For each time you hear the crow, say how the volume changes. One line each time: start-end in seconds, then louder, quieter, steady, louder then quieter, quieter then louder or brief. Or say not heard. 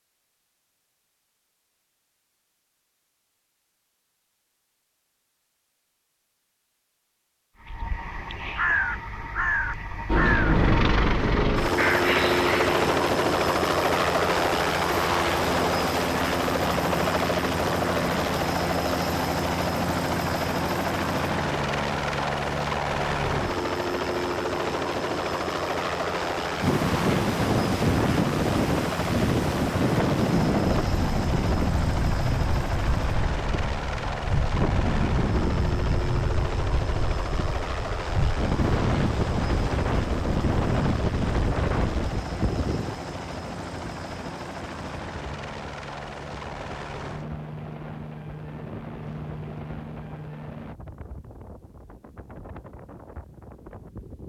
7.6-12.8 quieter then louder.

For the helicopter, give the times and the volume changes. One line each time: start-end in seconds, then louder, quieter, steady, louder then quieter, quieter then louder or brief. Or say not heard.
10.1-50.8 quieter.